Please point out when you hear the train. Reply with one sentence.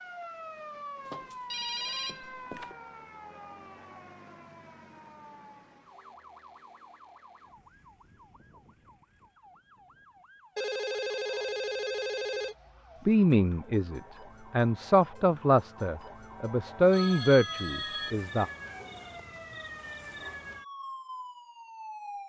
You can't hear the train here.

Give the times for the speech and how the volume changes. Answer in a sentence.
The speech can be heard from 13.1 to 18.4 s, getting louder.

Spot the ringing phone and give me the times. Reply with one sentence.
The ringing phone can be heard from 1.1 to 2.8 s, from 10.6 to 12.6 s and from 16.9 to 18.1 s.